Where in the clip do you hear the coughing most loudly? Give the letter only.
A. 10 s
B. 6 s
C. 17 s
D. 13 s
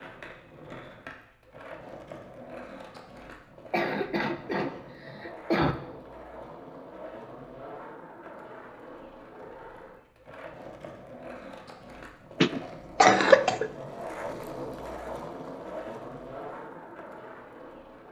D.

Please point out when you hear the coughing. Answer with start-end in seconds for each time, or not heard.
3.7-5.8, 12.4-13.7.